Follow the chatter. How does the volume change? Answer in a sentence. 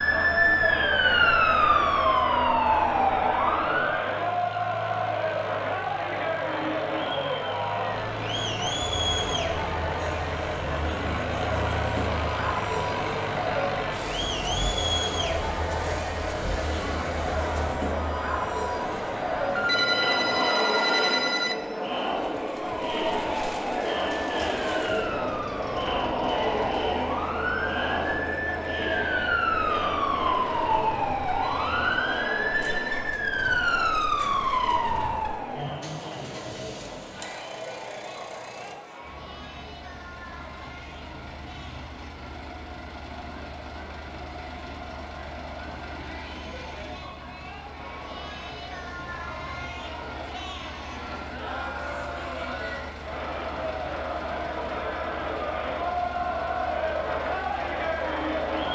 The loudness of the chatter goes down, then up.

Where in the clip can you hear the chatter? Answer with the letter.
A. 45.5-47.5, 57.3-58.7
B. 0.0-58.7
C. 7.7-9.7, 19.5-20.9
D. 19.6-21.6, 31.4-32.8
B.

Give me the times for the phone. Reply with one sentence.
You can hear the phone from 19.6 to 21.6 s and from 31.4 to 32.8 s.